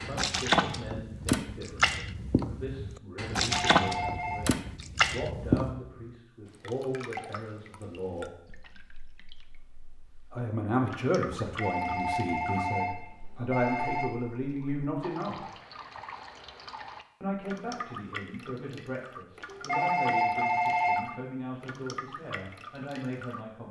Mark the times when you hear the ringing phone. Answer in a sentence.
You can hear the ringing phone from 3.4 to 4.5 s, from 11.4 to 14.1 s and from 19.4 to 21.1 s.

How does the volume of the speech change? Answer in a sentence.
The loudness of the speech goes up, then down.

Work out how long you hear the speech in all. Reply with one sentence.
You can hear the speech for 20 seconds altogether.